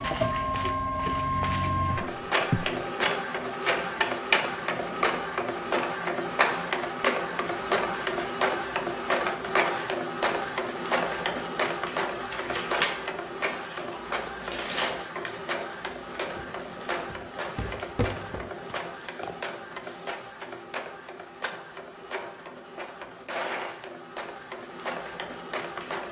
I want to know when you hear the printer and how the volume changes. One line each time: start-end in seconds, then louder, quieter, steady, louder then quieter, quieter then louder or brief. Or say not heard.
0.0-26.0 quieter.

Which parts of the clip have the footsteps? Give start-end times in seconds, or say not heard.
0.0-2.8, 16.2-19.4.